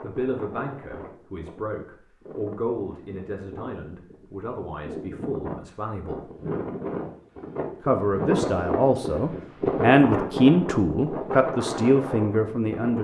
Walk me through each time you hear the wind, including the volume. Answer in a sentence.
You can hear the wind from 0.0 to 12.9 s, getting louder.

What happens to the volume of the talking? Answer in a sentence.
The loudness of the talking goes up.